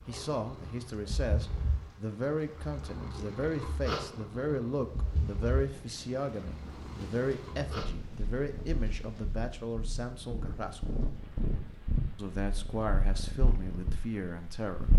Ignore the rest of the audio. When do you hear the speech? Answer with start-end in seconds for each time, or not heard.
0.1-11.0, 12.2-14.9.